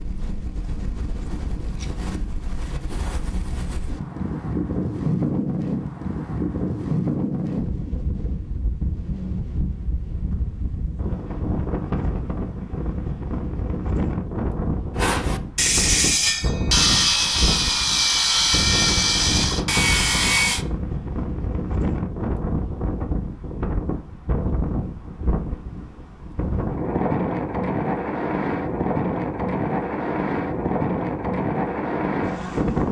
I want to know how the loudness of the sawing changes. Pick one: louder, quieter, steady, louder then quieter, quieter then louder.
steady.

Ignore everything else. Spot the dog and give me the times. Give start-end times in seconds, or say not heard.
not heard.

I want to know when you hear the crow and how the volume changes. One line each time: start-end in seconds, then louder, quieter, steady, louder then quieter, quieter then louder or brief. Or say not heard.
not heard.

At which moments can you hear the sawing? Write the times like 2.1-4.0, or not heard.
14.9-20.6.